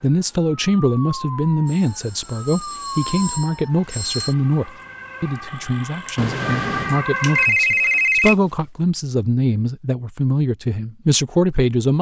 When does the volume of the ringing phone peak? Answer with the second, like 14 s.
8 s.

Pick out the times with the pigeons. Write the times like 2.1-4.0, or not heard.
not heard.